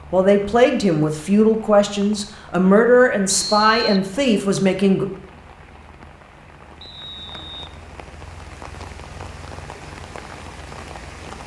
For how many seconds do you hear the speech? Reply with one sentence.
The speech can be heard for 5 seconds in total.